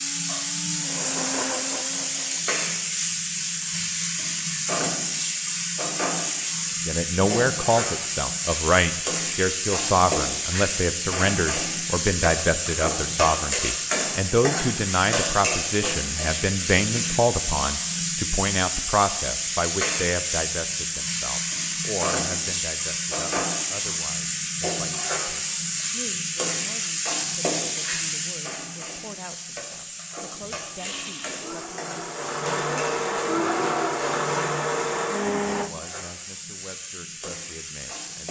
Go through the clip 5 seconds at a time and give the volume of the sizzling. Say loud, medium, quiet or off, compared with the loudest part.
loud, loud, loud, loud, loud, loud, medium, medium.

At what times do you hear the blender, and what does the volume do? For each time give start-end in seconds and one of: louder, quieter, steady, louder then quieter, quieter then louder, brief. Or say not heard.
0.0-2.5 brief
30.8-35.7 louder.